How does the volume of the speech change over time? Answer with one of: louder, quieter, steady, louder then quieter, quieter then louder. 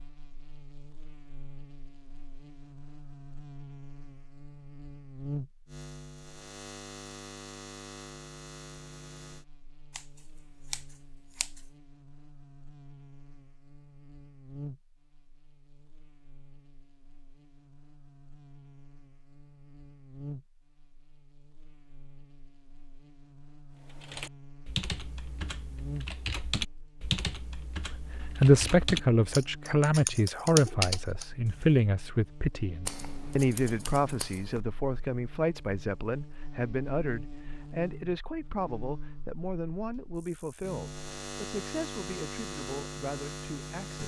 quieter.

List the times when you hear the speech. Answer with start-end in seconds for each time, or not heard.
27.9-44.0.